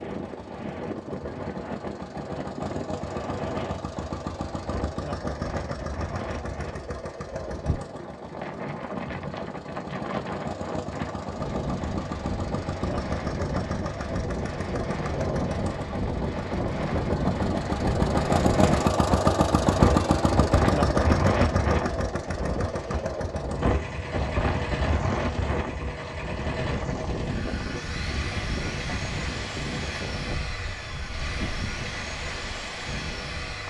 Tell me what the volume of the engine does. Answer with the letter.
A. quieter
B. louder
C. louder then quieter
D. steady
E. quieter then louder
C.